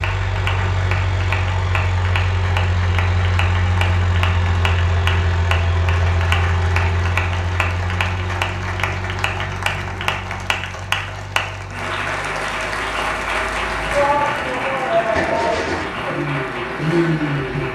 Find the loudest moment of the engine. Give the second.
17 s.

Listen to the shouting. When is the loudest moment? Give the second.
14 s.